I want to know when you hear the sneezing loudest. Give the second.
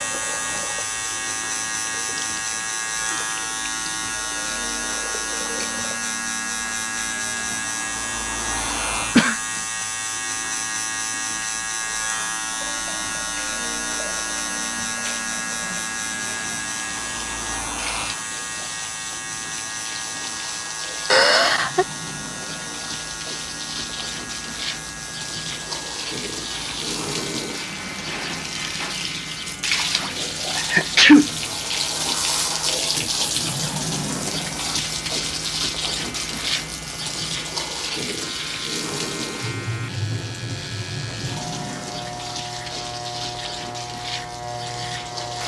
31 s.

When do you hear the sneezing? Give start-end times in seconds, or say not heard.
8.6-9.3, 21.1-21.9, 30.6-31.3.